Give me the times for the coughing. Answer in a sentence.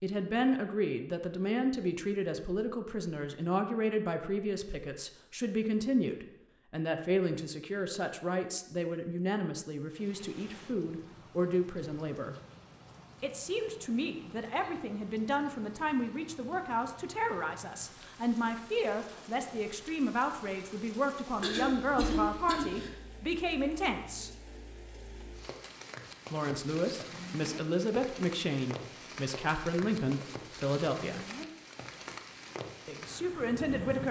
The coughing can be heard from 21.4 to 22.9 s.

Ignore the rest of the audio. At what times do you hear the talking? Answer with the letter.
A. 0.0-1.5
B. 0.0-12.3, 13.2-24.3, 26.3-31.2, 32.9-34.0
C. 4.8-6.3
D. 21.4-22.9
B.